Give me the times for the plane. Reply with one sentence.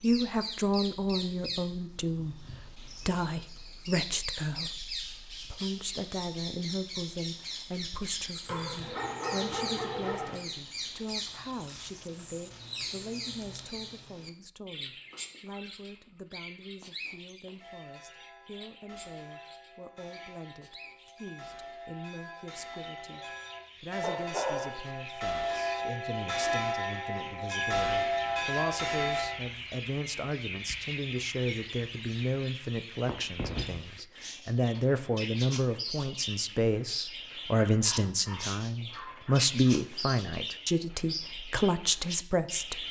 You can't hear the plane here.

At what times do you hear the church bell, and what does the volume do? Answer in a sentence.
You can hear the church bell from 17.6 to 29.4 s, getting louder.